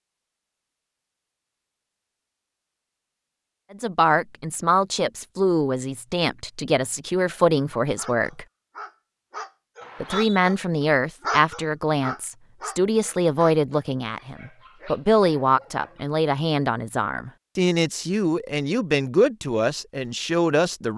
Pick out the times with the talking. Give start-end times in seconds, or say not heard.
3.7-8.4, 10.0-20.9.